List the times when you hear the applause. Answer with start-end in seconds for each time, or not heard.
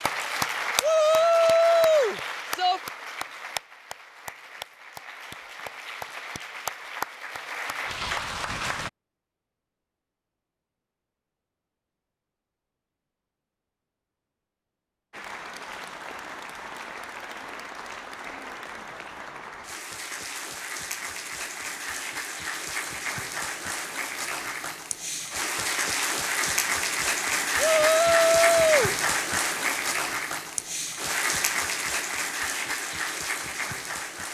0.0-8.9, 15.1-34.3.